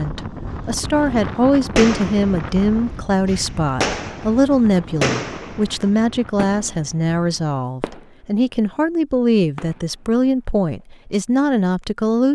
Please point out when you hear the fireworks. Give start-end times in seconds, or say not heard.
1.6-8.5, 9.6-10.3.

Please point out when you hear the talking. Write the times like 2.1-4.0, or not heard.
0.0-12.3.